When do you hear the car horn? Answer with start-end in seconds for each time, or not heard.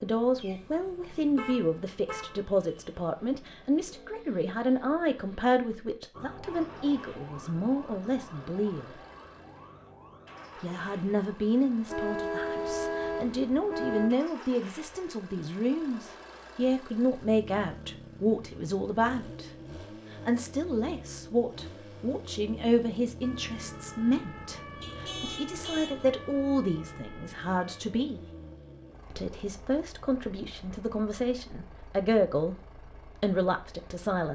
0.3-2.9, 11.8-14.2, 24.8-26.1.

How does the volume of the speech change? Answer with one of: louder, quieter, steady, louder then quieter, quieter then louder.
steady.